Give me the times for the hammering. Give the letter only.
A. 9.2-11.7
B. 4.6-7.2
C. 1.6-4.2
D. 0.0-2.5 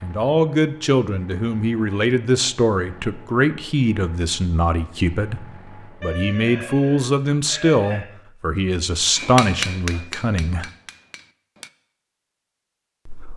A.